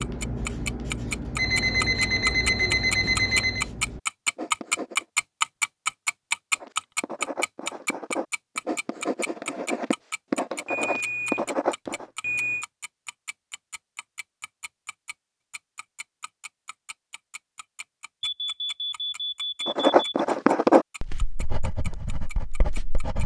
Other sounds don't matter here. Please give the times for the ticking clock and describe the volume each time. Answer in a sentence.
The ticking clock can be heard from 0.0 to 23.2 s, getting quieter.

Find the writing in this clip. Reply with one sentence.
You can hear the writing from 0.0 to 5.0 s, from 6.5 to 12.1 s and from 19.6 to 23.2 s.